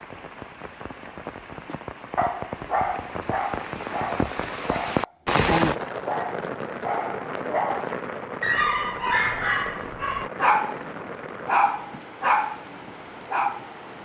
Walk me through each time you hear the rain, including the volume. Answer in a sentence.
The rain can be heard from 0.0 to 13.9 s, getting louder then quieter.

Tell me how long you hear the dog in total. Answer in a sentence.
You can hear the dog for 12 seconds altogether.